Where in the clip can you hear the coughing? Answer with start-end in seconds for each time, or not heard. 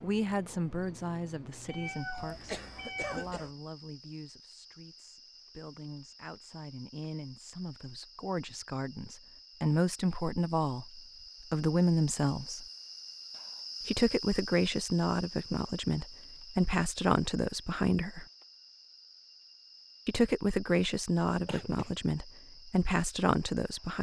2.1-3.5, 21.2-22.1.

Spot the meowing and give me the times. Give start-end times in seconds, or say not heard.
1.6-3.2.